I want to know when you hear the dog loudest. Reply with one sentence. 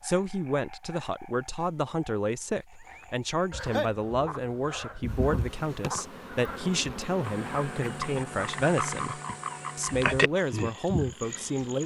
The volume of the dog peaks at 4 seconds.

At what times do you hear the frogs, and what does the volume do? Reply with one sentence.
The frogs can be heard from 0.0 to 11.8 s, getting louder.